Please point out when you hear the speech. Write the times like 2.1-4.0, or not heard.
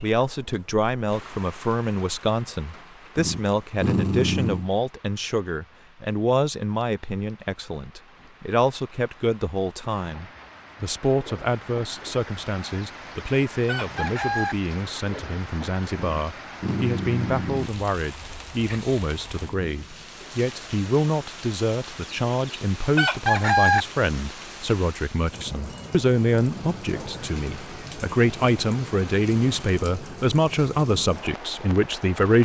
0.0-32.4.